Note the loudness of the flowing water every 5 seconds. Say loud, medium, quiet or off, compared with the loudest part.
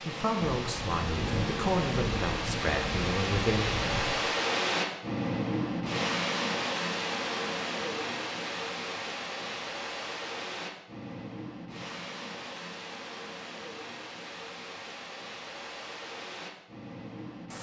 loud, loud, medium, medium.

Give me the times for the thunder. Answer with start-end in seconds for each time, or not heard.
0.6-4.2.